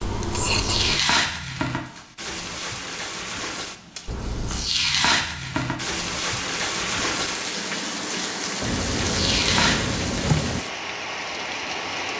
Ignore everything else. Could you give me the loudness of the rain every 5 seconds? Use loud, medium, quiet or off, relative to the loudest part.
medium, loud, loud.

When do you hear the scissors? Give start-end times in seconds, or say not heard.
0.0-1.0, 4.0-4.8, 8.6-10.7.